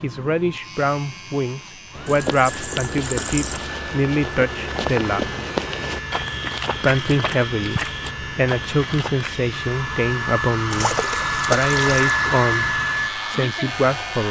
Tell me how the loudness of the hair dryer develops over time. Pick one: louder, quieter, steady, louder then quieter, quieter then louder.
louder.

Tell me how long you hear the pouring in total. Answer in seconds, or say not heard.
3 s.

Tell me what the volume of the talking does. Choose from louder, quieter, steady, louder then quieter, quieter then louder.
steady.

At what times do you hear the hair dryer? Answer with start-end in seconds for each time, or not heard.
0.0-14.2.